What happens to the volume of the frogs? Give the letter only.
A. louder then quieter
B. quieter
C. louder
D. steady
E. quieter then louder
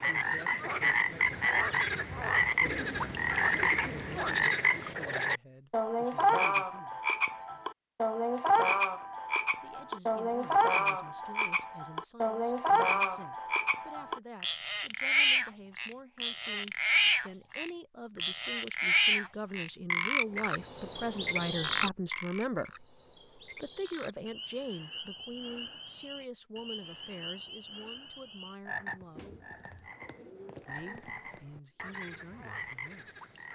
B.